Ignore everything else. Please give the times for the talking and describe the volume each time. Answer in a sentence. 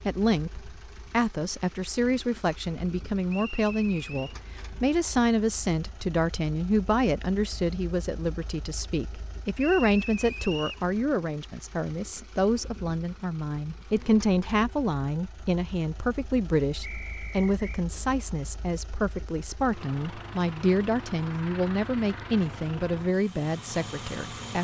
You can hear the talking from 0.1 to 24.5 s, at a steady volume.